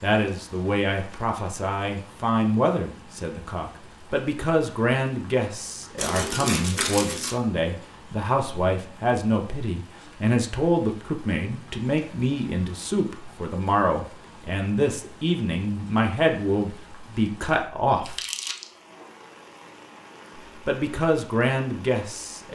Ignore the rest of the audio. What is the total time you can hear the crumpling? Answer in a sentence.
The crumpling can be heard for 2 seconds in total.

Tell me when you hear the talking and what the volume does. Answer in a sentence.
The talking can be heard from 0.0 to 18.1 s, at a steady volume; and briefly from 20.6 to 22.4 s.